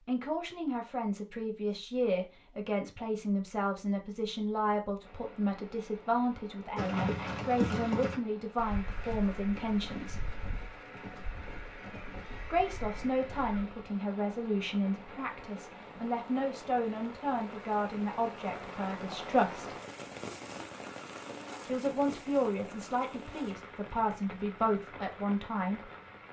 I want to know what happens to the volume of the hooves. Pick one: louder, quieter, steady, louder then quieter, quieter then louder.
quieter.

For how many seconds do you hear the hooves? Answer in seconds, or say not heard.
7 s.